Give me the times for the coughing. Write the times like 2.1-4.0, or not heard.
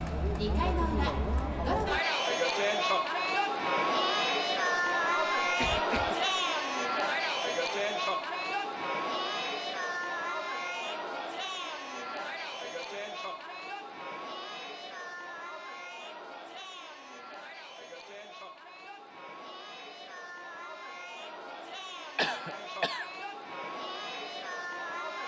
5.4-6.2, 22.1-23.1.